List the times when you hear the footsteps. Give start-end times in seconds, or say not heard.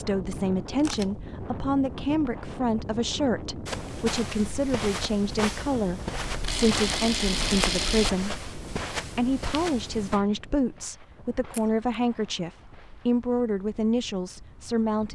3.6-13.2.